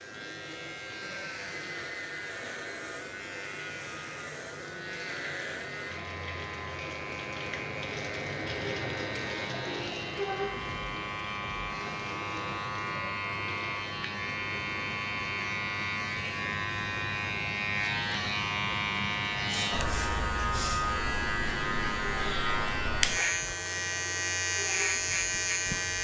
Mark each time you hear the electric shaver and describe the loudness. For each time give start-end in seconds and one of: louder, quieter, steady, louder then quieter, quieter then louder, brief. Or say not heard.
0.0-25.9 louder.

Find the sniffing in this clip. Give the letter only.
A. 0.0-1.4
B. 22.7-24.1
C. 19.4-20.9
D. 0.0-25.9
C.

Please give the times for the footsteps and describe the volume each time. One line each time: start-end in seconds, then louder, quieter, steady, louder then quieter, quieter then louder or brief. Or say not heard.
not heard.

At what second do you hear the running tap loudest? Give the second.
10 s.